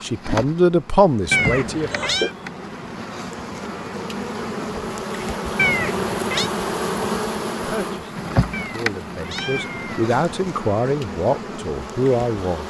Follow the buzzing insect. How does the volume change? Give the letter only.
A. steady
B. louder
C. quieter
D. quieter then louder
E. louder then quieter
E.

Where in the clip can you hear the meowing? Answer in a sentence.
The meowing can be heard from 1.3 to 2.3 s, from 5.5 to 6.5 s and from 8.5 to 10.0 s.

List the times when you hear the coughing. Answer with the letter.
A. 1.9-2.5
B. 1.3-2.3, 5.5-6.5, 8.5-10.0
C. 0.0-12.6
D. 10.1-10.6
A.